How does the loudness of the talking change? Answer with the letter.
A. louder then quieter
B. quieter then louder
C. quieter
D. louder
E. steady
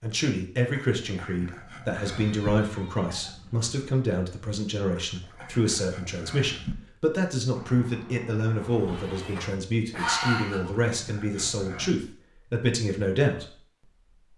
E.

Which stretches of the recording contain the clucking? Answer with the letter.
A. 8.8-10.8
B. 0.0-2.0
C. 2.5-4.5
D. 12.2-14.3
A.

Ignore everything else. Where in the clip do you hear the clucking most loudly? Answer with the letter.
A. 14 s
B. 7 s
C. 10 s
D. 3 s
C.